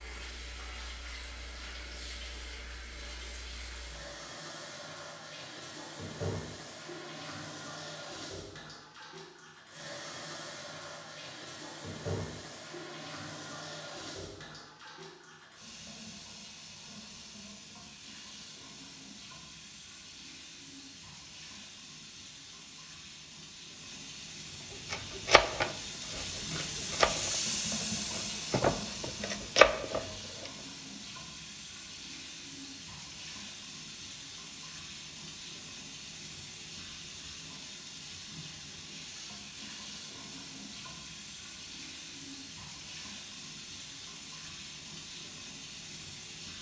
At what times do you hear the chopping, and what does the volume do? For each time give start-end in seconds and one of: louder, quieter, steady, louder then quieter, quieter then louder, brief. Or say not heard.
24.9-30.5 quieter then louder.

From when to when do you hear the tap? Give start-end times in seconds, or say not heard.
0.0-46.5.